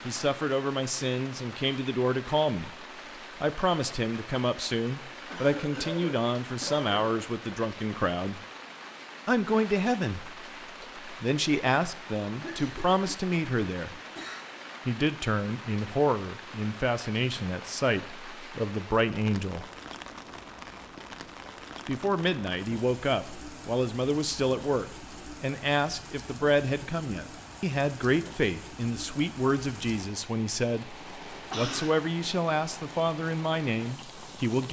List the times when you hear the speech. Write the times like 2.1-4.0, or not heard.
0.1-8.4, 9.2-14.0, 14.8-19.6, 21.9-34.6.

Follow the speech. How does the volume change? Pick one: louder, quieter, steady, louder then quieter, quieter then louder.
steady.